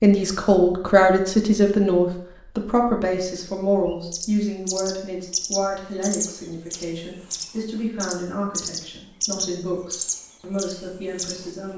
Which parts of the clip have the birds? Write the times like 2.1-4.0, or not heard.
3.9-11.7.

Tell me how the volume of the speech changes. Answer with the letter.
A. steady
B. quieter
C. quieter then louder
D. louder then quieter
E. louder
B.